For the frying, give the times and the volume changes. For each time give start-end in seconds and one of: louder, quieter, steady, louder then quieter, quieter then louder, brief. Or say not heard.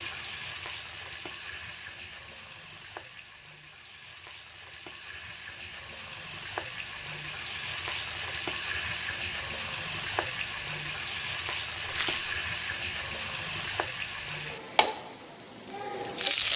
0.0-16.5 louder.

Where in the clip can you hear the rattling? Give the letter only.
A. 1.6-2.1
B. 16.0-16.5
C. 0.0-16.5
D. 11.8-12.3
D.